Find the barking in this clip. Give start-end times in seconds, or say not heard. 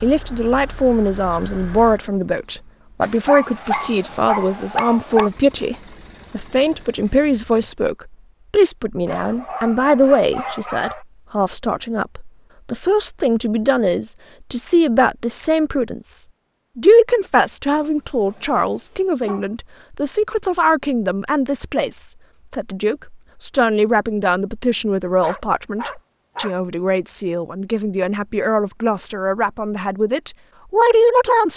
3.2-5.3, 9.1-11.1, 17.8-19.5, 25.2-26.6.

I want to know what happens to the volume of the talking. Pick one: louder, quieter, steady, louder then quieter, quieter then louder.
steady.